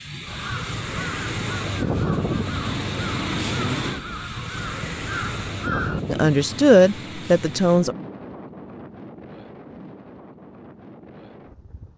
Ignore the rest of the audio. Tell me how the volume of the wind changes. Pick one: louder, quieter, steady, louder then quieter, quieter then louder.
quieter.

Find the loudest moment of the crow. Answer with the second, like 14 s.
6 s.